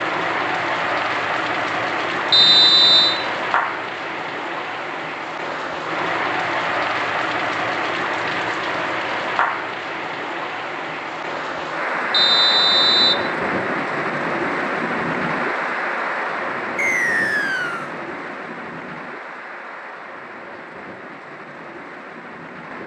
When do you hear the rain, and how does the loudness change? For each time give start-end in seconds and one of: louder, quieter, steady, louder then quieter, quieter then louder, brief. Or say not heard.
0.0-22.8 quieter.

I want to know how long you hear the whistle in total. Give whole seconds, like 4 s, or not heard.
3 s.